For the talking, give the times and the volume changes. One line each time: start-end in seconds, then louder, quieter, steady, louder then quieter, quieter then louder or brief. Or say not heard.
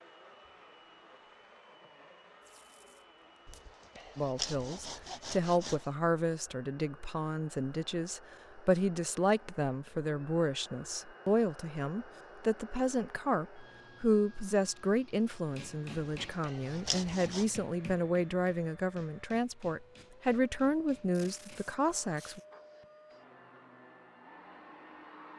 4.2-22.4 steady.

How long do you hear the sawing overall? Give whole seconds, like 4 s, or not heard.
4 s.